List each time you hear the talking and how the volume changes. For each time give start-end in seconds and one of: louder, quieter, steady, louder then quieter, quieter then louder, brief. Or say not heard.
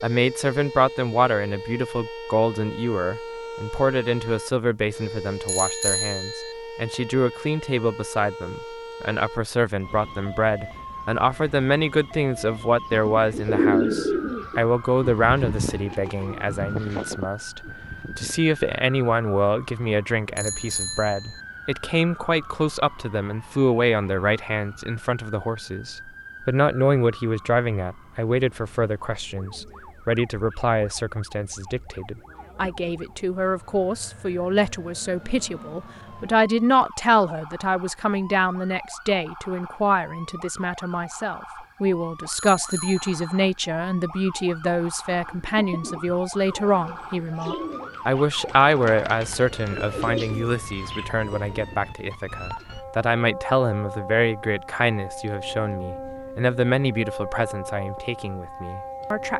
0.0-59.3 steady.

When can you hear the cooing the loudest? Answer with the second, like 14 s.
14 s.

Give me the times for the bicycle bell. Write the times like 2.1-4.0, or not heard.
5.5-6.5, 20.4-21.4, 42.4-43.5.